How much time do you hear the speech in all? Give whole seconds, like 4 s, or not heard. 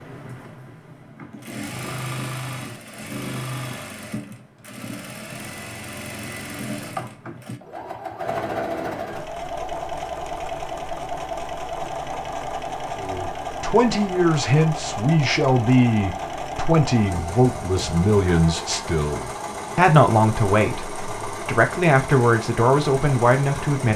11 s.